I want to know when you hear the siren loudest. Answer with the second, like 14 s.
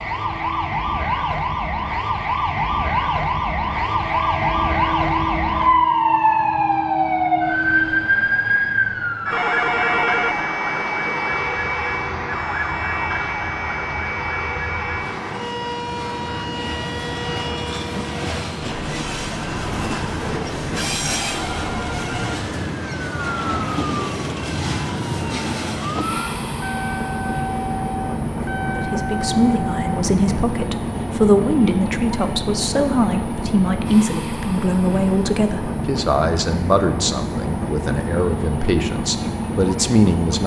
6 s.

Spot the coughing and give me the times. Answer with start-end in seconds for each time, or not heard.
not heard.